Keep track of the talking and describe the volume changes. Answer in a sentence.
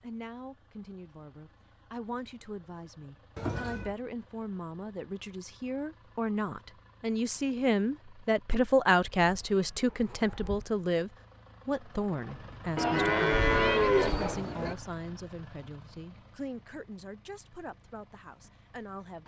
The loudness of the talking goes up, then down.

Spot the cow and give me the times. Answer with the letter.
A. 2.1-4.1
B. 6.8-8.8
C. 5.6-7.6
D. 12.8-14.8
D.